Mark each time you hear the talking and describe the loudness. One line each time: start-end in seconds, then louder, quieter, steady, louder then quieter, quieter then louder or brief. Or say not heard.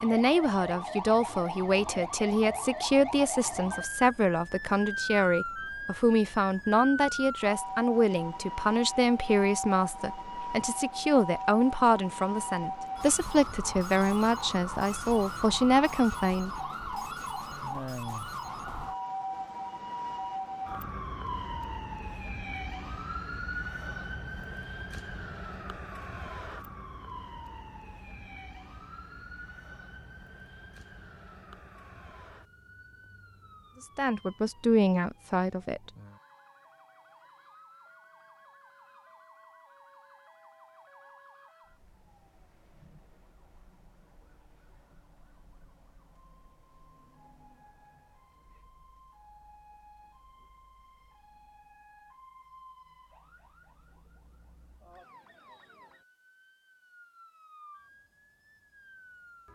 0.0-16.5 steady
34.0-35.9 brief.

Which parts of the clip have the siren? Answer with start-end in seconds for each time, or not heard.
0.0-59.5.